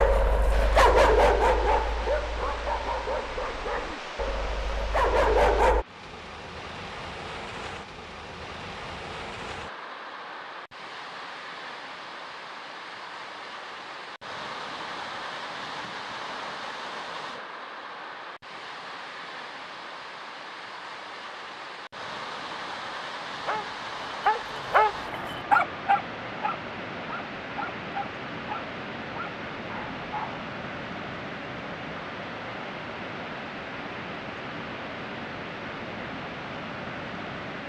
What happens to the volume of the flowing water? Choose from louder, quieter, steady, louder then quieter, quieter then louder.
steady.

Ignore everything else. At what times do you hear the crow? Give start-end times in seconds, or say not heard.
not heard.